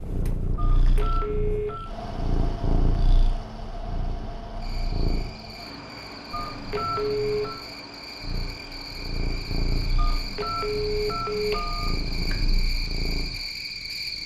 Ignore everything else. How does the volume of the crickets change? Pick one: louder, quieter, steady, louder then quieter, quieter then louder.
louder.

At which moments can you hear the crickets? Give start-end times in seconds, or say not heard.
4.5-14.2.